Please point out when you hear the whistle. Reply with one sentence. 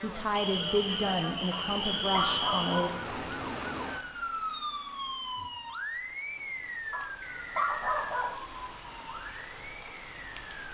You can hear the whistle from 0.3 to 2.9 s and from 7.2 to 8.2 s.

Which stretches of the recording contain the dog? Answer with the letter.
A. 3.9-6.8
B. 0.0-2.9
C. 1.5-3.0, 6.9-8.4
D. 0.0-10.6
C.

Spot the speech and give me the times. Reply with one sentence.
You can hear the speech from 0.0 to 2.9 s.